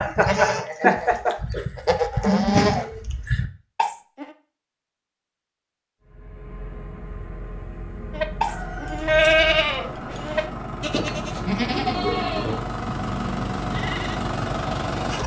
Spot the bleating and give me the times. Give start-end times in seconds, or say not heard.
0.0-4.3, 8.2-14.3.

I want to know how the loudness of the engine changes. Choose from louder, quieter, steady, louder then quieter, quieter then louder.
louder.